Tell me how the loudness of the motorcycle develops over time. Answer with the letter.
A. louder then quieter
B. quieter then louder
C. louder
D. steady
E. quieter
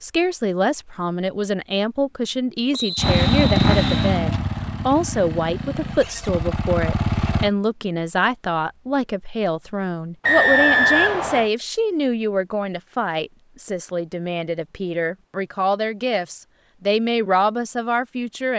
B.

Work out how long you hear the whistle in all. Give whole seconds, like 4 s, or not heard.
3 s.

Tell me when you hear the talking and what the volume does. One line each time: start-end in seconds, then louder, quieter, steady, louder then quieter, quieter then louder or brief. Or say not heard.
0.0-18.5 steady.